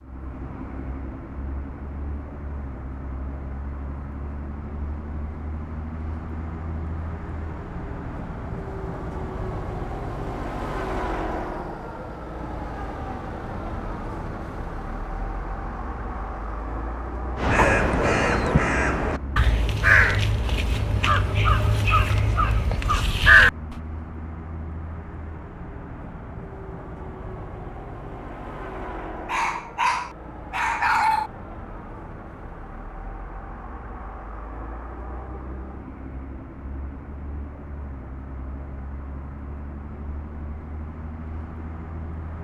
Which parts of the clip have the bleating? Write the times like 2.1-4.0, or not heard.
not heard.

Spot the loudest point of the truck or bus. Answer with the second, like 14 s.
11 s.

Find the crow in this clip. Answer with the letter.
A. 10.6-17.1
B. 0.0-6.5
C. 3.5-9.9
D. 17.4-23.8
D.